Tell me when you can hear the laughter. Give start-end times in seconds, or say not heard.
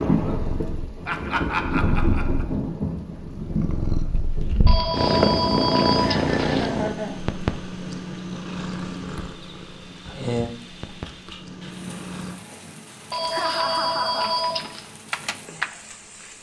1.1-2.5, 6.0-7.2, 13.3-14.3.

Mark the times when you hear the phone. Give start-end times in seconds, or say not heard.
4.7-6.7, 13.1-14.8.